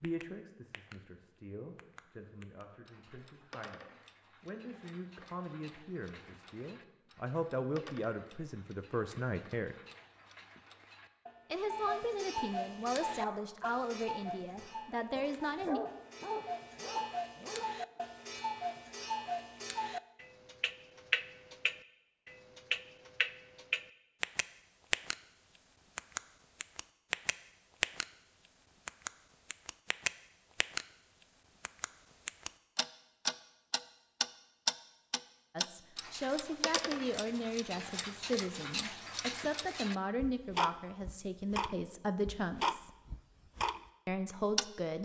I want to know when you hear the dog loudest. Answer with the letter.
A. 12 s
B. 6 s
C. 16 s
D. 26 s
C.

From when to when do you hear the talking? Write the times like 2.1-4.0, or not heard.
0.0-9.8, 11.5-15.8, 35.5-42.9, 44.0-44.9.